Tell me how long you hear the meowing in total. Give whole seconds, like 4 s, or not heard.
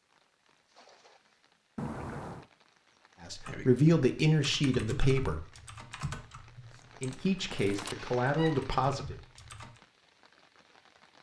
2 s.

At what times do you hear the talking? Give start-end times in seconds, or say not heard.
3.2-5.5, 7.0-9.2.